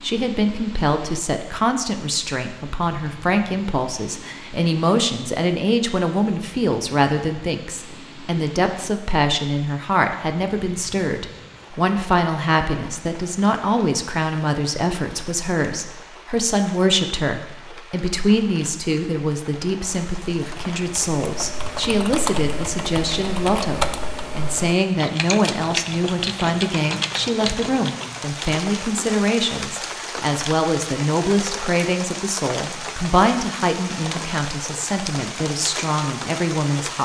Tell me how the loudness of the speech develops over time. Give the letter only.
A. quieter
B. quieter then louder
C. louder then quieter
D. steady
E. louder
D.